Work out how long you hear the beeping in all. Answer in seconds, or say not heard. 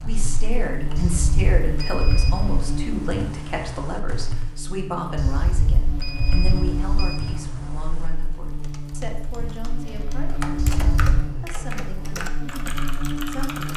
4 s.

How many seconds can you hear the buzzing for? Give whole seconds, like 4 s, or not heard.
14 s.